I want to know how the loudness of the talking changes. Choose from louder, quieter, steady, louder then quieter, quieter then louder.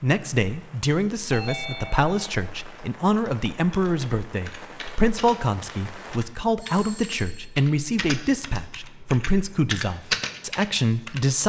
steady.